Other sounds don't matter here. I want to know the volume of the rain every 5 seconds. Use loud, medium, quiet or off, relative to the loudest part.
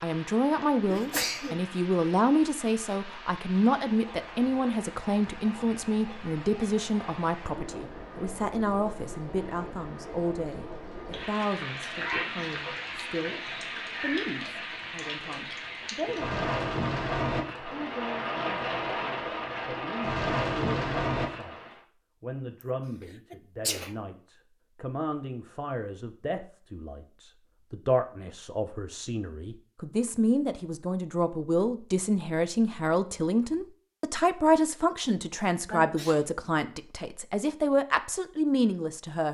quiet, quiet, medium, loud, loud, off, off, off.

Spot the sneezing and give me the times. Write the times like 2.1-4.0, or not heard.
0.8-1.6, 23.3-23.9, 35.7-36.2.